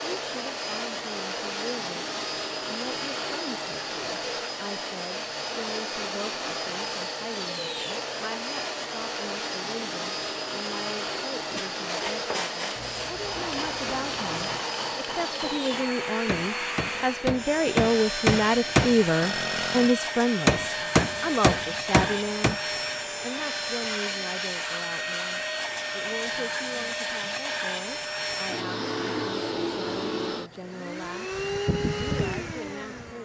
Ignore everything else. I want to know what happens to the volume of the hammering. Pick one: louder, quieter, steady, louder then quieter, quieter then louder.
louder.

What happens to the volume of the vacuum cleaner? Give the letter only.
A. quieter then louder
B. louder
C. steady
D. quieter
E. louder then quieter
C.